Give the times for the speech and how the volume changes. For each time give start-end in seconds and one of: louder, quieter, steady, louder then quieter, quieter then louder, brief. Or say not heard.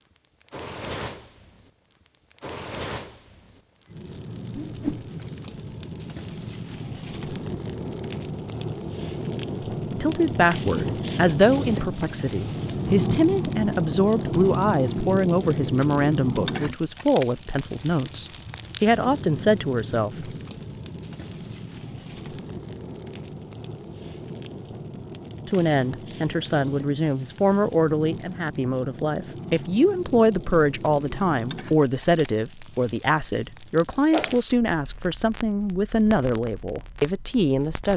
10.0-20.3 steady
25.4-37.9 steady.